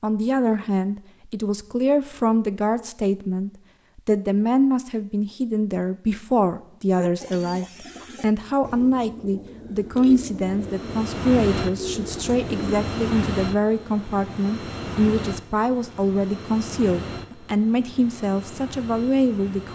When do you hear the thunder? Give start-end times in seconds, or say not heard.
not heard.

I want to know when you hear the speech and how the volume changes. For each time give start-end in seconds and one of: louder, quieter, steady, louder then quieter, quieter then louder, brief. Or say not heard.
0.0-19.7 steady.